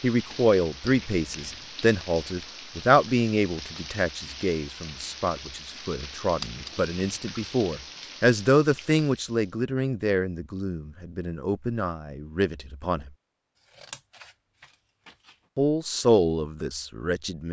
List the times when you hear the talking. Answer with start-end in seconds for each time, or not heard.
0.0-13.1, 15.6-17.4.